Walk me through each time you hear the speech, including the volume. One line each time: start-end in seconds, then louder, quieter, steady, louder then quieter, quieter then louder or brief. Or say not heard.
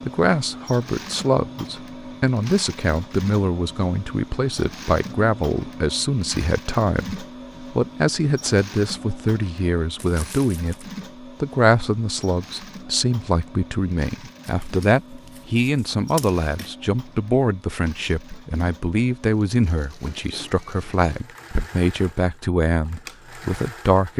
0.0-24.1 steady.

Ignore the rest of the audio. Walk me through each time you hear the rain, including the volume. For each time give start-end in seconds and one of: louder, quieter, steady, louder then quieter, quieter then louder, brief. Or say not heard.
not heard.